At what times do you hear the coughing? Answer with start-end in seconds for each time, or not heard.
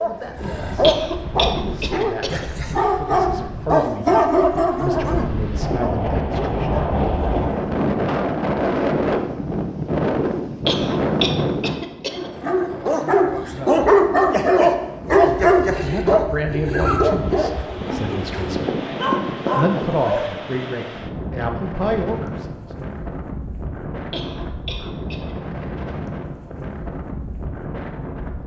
0.8-2.5, 10.7-12.3, 24.1-25.4.